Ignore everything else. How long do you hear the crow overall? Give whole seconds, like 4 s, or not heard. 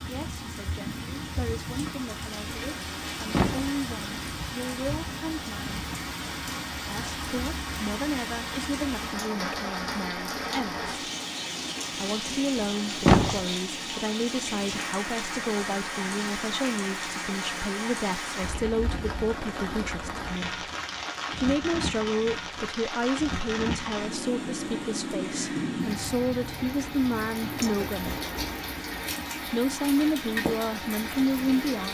not heard.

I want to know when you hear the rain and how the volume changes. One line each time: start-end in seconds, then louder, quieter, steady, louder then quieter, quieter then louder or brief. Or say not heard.
0.0-31.8 steady.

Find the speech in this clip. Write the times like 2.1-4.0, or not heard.
0.1-5.7, 6.8-10.8, 11.9-20.6, 21.4-28.2, 29.5-31.8.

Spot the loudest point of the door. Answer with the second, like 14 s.
13 s.